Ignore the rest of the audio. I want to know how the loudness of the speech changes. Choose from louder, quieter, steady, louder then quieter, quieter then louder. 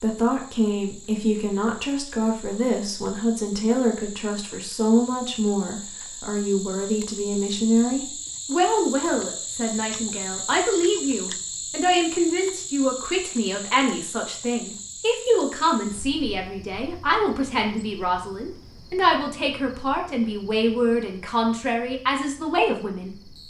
steady.